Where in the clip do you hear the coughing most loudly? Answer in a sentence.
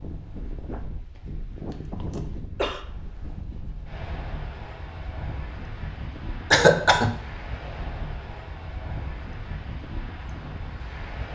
The volume of the coughing peaks at 7 seconds.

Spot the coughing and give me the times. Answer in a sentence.
You can hear the coughing from 2.1 to 2.9 s and from 6.5 to 7.1 s.